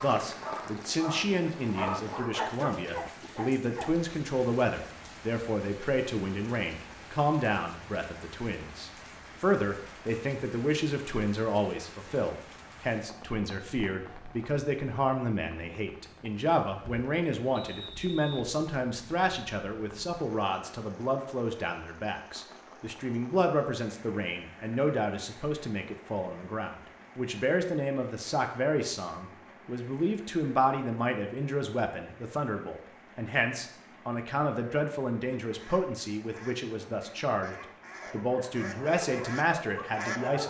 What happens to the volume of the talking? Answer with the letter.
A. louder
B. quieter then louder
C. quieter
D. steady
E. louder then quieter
D.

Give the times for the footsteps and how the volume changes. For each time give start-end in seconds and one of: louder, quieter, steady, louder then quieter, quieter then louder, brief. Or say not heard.
not heard.